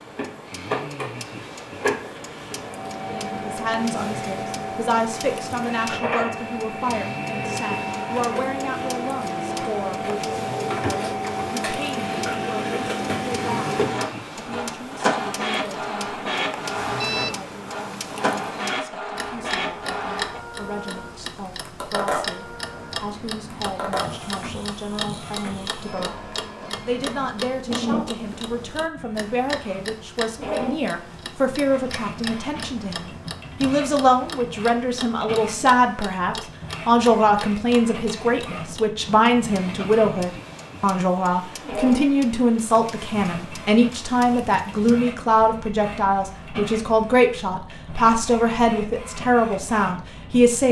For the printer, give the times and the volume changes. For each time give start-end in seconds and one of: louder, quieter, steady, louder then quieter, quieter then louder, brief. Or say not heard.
0.0-50.6 quieter.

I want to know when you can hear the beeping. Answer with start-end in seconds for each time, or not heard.
16.6-17.4.